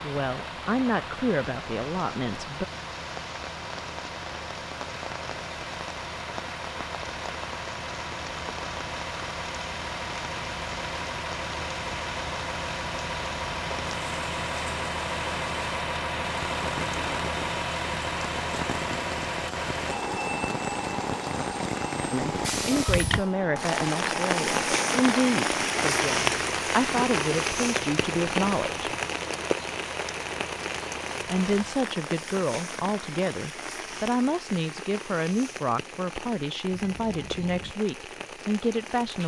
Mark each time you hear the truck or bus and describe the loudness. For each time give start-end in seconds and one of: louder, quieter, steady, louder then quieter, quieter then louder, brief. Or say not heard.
0.0-31.9 louder then quieter.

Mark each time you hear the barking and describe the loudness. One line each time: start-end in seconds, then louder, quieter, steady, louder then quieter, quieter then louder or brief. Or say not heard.
not heard.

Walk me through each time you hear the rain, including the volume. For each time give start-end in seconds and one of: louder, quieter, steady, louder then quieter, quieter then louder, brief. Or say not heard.
0.0-39.2 louder then quieter.